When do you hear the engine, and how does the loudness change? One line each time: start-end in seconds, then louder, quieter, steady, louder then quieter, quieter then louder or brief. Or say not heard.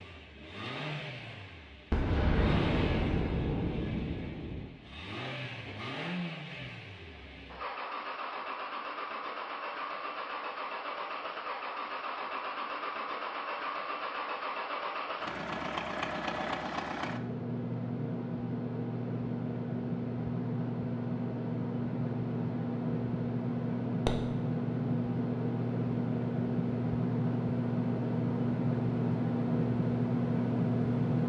0.0-31.2 louder.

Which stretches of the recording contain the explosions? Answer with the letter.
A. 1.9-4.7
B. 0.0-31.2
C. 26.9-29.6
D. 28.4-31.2
A.